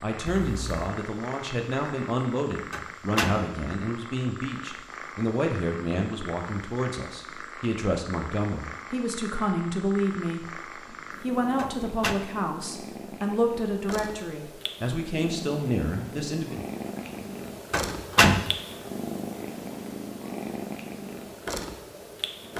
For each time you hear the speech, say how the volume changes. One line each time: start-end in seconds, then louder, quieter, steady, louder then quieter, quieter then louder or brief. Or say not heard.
0.0-16.6 steady.